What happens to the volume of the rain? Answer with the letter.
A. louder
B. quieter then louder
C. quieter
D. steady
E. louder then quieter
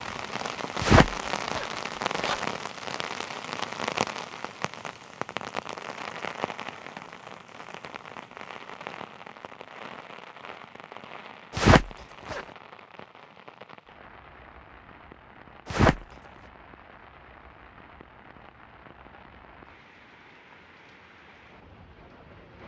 C.